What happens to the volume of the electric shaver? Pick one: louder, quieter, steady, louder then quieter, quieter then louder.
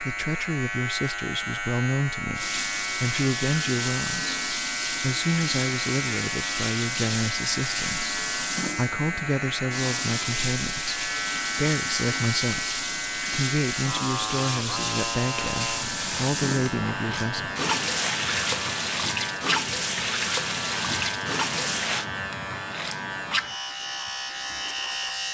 steady.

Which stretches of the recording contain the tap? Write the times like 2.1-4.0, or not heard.
2.4-22.1.